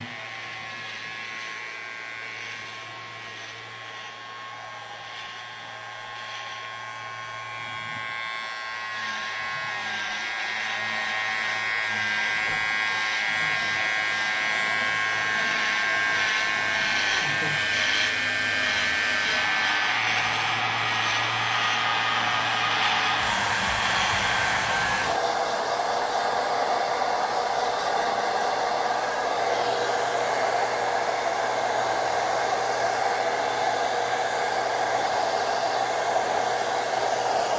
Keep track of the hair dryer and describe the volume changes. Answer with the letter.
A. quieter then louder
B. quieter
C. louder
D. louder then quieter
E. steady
C.